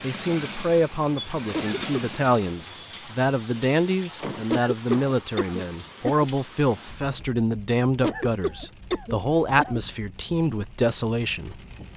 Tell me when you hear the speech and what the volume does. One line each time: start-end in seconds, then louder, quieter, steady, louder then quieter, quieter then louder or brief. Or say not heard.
0.0-11.9 steady.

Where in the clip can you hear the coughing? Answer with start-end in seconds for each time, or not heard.
1.5-2.2, 4.5-6.2, 8.0-9.8.